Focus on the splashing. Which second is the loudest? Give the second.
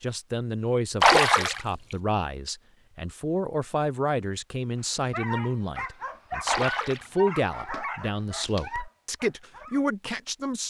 1 s.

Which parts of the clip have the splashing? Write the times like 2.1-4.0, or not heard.
1.0-1.6, 6.5-7.1.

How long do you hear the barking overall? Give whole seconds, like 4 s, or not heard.
5 s.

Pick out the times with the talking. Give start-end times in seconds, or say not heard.
0.0-10.6.